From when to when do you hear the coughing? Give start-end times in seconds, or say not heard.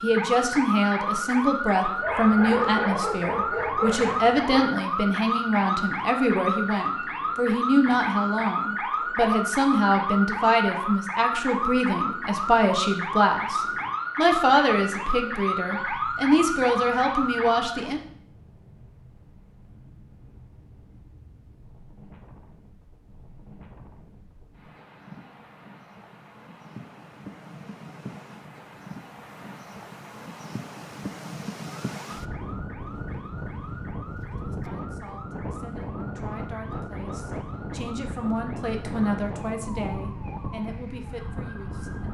not heard.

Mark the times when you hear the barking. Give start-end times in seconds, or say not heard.
2.0-4.7.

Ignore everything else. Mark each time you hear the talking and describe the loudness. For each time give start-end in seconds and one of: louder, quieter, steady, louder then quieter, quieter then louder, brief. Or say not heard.
0.0-18.0 steady
34.4-42.0 louder then quieter.